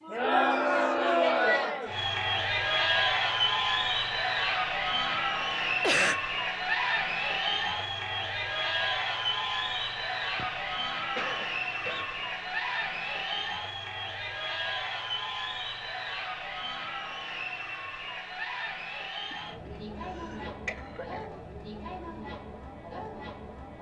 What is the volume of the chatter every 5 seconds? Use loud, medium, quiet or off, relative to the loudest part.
loud, loud, medium, medium, quiet.